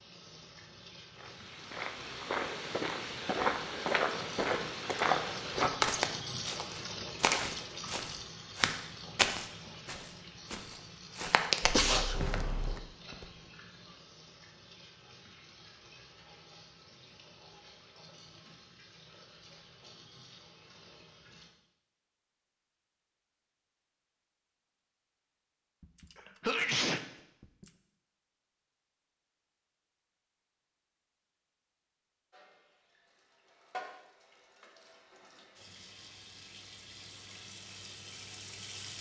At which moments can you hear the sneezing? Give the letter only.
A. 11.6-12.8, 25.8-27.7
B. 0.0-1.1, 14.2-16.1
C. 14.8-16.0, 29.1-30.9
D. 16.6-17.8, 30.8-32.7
A.